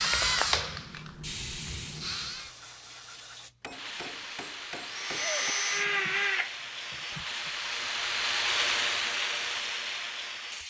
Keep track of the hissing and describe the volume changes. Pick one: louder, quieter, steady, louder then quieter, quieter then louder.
louder.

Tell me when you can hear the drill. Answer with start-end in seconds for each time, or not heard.
0.0-2.5, 4.8-7.5.